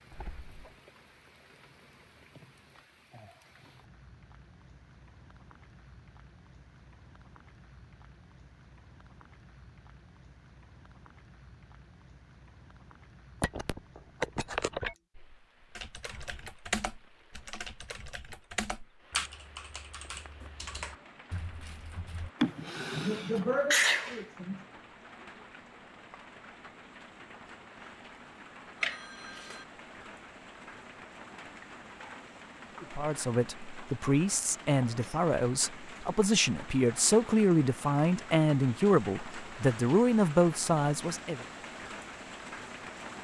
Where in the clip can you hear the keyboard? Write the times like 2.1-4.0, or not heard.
15.8-22.3.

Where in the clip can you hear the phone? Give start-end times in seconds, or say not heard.
13.4-14.9, 28.8-29.6.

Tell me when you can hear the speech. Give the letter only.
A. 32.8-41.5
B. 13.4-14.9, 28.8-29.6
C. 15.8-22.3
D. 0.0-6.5
A.